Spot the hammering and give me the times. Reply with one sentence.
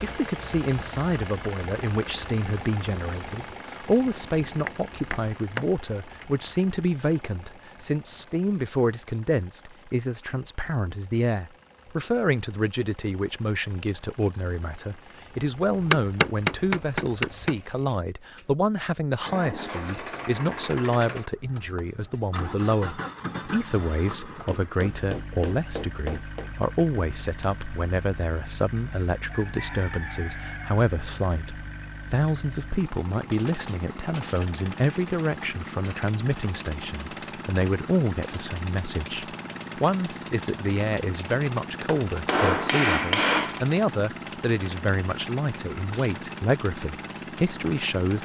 You can hear the hammering from 4.7 to 5.7 s, from 15.8 to 17.6 s, from 24.4 to 26.5 s and from 41.9 to 43.6 s.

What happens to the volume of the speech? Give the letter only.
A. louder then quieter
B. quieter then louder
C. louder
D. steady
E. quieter
D.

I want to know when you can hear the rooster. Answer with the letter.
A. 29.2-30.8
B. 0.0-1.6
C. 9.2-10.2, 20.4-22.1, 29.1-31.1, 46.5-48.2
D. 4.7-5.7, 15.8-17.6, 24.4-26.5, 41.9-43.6
A.